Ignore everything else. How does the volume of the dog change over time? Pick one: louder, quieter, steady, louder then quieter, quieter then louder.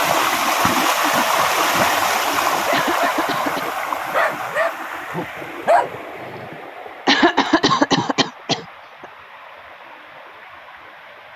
louder.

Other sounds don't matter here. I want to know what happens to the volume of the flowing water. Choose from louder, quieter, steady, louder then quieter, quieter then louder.
quieter.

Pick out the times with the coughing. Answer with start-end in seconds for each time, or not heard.
2.7-3.6, 7.0-9.1.